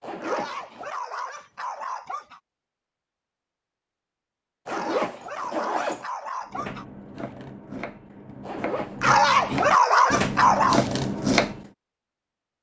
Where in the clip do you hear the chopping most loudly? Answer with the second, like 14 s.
11 s.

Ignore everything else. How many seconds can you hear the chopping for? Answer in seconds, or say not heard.
5 s.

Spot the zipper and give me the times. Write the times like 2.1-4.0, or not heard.
0.0-0.9, 4.7-6.0, 8.4-9.1.